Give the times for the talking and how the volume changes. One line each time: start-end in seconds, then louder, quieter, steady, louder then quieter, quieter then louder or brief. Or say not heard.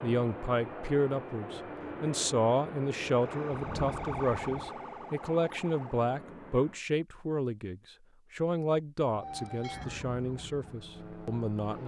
0.0-11.8 quieter.